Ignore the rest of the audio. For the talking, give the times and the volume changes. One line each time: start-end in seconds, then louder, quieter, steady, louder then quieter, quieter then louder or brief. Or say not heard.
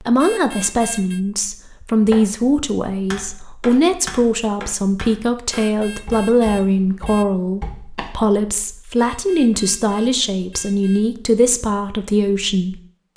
0.0-13.1 steady.